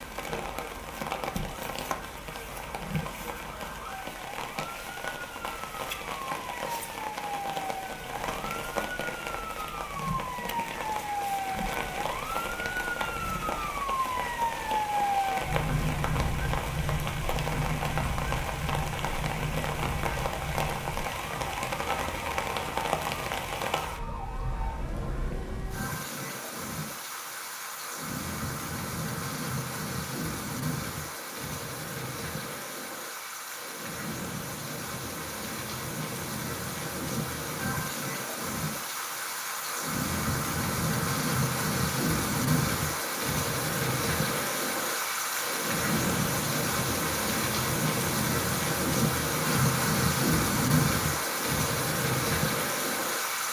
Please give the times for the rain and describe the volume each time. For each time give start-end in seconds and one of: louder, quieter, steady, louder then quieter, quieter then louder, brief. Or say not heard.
0.0-53.4 louder.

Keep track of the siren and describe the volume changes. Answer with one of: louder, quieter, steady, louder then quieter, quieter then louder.
louder then quieter.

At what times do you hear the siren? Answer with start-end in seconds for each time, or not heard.
0.0-25.8.